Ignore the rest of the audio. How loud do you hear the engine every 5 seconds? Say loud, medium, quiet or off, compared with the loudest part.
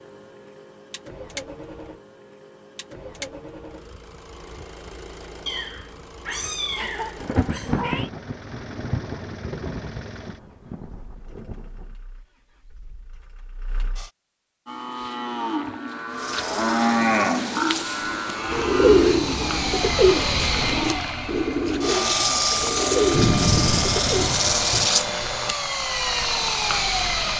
quiet, quiet, quiet, medium, loud, loud.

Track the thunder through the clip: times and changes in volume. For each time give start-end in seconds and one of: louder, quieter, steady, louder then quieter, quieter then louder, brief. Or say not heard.
7.2-11.6 quieter
23.1-24.9 brief.